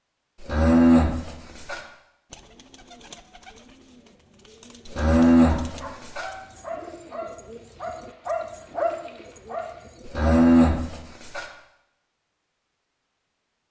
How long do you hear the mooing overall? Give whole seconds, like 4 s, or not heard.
4 s.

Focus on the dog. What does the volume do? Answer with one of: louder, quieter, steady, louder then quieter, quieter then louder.
louder.